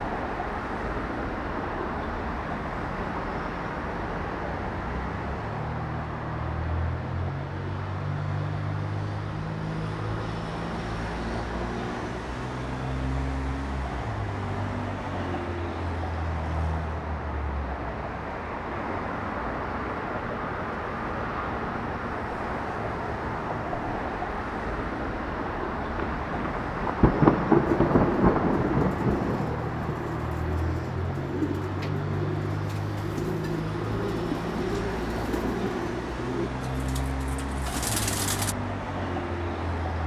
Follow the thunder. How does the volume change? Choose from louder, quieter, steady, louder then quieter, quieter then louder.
louder then quieter.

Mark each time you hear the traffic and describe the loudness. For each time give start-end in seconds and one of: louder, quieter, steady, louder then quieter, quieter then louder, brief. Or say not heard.
0.0-40.0 steady.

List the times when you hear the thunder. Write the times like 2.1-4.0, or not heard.
25.9-30.0.